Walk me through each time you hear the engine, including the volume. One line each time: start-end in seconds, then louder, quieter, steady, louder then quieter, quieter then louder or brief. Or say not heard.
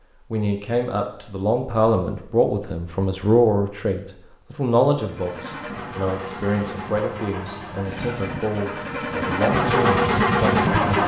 5.0-11.0 louder.